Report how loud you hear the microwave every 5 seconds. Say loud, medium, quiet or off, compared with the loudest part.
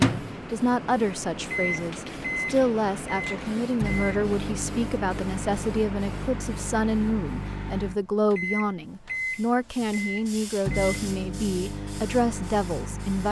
loud, medium, medium.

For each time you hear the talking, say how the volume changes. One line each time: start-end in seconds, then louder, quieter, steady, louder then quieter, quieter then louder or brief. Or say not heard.
0.0-13.2 steady.